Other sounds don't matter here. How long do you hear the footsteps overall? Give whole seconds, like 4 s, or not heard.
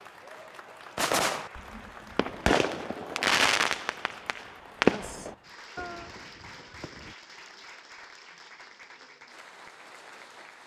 not heard.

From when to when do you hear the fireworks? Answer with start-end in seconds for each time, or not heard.
0.9-7.2.